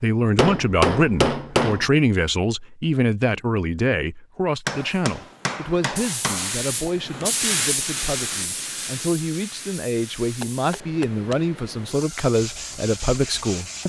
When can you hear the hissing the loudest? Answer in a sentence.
The volume of the hissing peaks at 8 seconds.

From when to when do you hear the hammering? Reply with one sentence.
The hammering can be heard from 0.3 to 1.9 s, from 4.7 to 6.5 s and from 10.4 to 11.3 s.